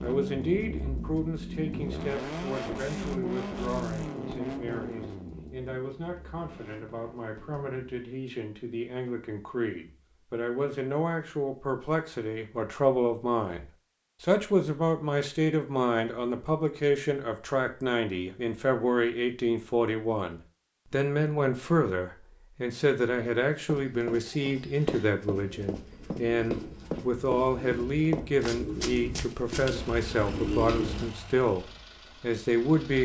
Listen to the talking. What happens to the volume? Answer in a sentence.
The volume of the talking goes up.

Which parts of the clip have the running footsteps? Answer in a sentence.
The running footsteps can be heard from 23.6 to 29.8 s.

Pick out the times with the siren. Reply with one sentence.
You can't hear the siren here.